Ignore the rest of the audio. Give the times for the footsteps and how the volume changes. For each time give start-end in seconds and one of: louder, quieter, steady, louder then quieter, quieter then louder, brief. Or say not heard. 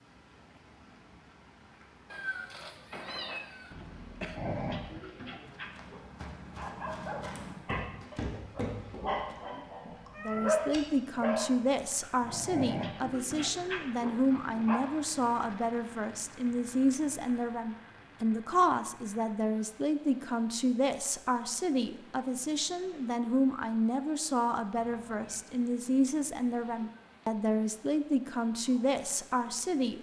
5.5-10.8 louder then quieter.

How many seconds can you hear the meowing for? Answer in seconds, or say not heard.
3 s.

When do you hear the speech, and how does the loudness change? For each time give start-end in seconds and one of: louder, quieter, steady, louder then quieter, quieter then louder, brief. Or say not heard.
10.2-29.9 steady.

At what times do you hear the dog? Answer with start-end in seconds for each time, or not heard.
4.3-14.8.